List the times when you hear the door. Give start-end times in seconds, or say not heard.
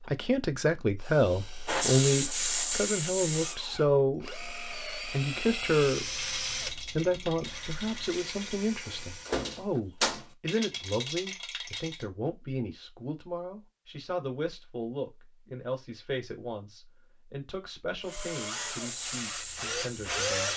8.8-10.2.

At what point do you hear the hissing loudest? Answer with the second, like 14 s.
2 s.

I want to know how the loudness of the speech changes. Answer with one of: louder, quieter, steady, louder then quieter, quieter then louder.
quieter.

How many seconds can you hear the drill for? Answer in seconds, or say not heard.
12 s.